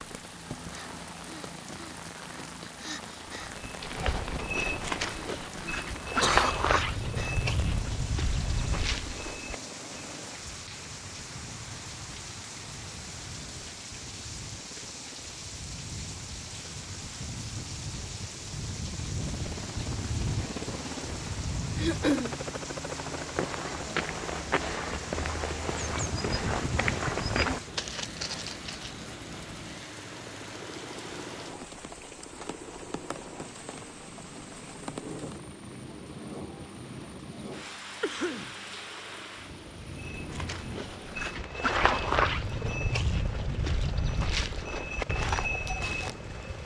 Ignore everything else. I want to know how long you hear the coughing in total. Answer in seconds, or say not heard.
2 s.